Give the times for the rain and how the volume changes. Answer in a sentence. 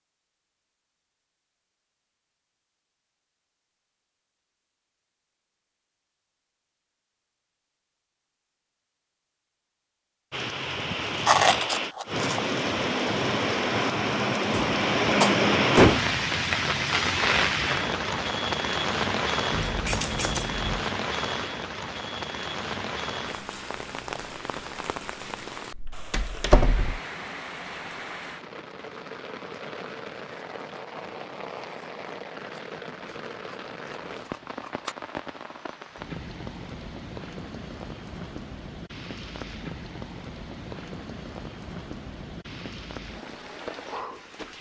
The rain can be heard from 10.3 to 44.5 s, getting quieter.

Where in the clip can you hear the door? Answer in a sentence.
You can hear the door from 14.5 to 16.1 s and from 25.8 to 26.9 s.